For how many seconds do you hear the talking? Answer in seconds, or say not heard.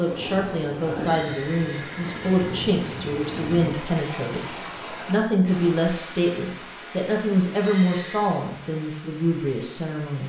10 s.